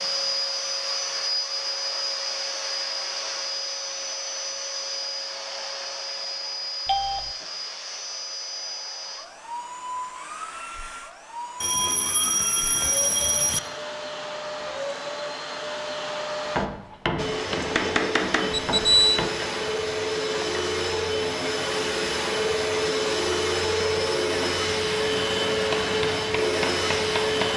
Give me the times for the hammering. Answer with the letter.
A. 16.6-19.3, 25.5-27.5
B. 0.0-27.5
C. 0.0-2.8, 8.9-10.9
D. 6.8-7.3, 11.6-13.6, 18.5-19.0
A.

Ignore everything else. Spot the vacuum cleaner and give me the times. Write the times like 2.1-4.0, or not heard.
0.0-27.5.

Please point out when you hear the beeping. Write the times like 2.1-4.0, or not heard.
6.8-7.3, 11.6-13.6, 18.5-19.0.